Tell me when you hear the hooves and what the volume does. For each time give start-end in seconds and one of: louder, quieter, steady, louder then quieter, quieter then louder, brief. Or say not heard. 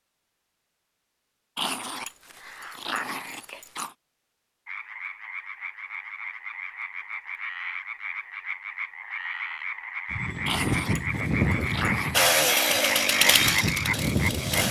10.1-14.6 quieter then louder.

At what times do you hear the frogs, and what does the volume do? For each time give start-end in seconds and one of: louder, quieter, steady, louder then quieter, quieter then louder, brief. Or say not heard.
4.7-14.6 louder.